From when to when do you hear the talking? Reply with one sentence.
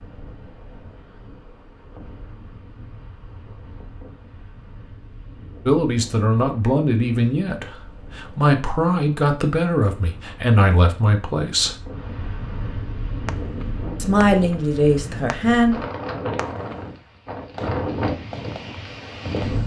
You can hear the talking from 5.7 to 11.8 s and from 13.9 to 15.8 s.